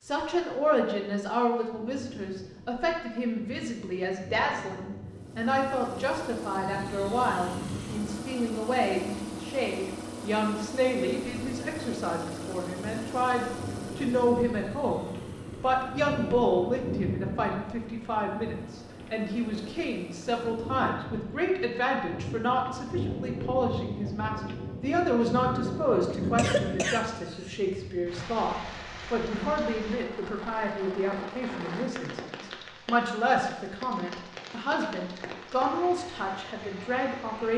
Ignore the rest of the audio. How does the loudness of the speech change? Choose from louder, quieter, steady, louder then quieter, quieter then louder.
steady.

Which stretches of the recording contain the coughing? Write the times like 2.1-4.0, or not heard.
26.2-27.6.